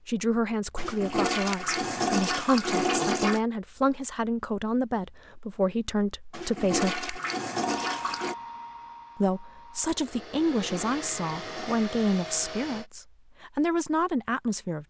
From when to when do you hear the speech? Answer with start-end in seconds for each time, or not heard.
0.1-7.1, 9.2-14.8.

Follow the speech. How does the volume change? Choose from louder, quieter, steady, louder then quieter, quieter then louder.
steady.